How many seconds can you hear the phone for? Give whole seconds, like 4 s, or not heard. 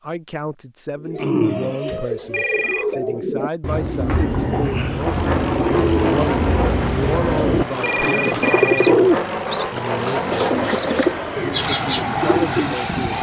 3 s.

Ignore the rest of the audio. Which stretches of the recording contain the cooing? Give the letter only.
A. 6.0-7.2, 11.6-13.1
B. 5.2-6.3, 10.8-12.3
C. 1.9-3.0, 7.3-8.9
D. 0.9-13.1
D.